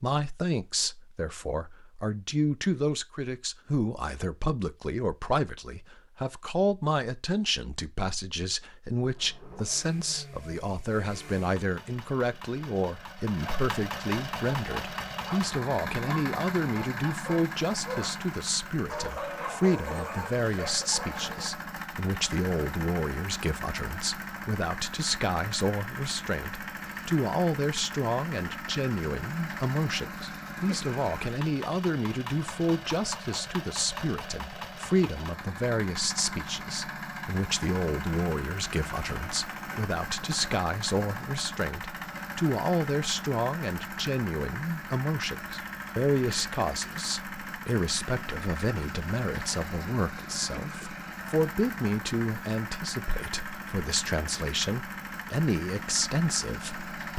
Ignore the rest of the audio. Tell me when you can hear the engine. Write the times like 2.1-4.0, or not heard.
9.1-57.1.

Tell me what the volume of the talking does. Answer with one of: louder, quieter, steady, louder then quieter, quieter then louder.
steady.